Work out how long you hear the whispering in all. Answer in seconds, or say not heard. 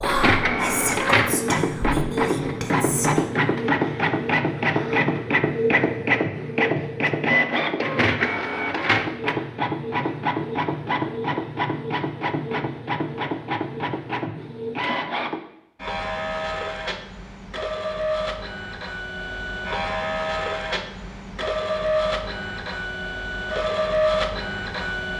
3 s.